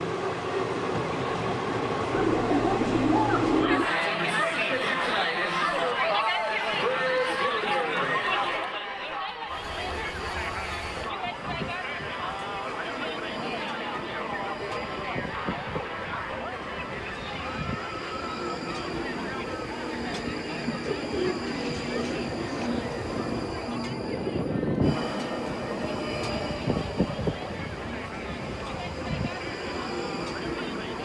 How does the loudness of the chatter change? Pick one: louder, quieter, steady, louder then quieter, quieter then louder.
quieter.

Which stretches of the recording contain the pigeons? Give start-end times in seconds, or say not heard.
2.1-3.9, 20.8-22.7.